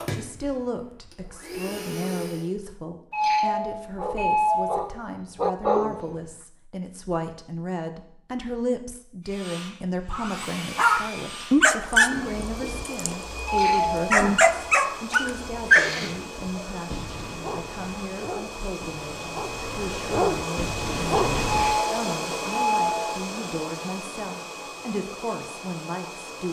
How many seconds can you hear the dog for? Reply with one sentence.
You can hear the dog for 14 seconds altogether.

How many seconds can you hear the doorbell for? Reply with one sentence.
You can hear the doorbell for 4 seconds altogether.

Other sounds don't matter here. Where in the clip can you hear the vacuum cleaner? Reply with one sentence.
The vacuum cleaner can be heard from 0.0 to 2.5 s and from 9.2 to 26.4 s.